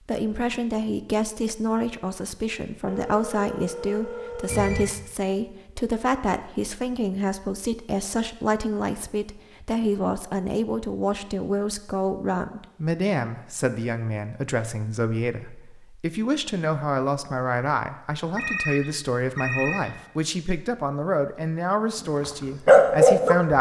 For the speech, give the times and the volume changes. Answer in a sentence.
The speech can be heard from 0.1 to 23.5 s, at a steady volume.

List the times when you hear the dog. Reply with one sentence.
You can hear the dog from 22.2 to 23.4 s.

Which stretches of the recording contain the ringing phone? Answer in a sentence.
The ringing phone can be heard from 2.9 to 4.8 s and from 18.4 to 20.0 s.